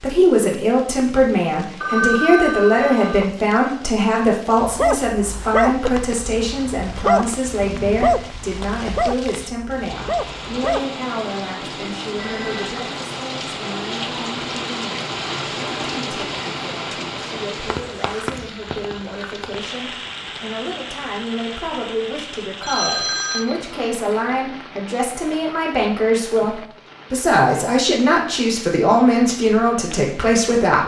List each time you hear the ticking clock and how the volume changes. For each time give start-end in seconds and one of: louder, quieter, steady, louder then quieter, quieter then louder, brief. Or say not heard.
not heard.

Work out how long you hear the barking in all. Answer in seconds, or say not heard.
6 s.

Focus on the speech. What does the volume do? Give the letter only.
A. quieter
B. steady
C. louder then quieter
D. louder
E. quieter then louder
E.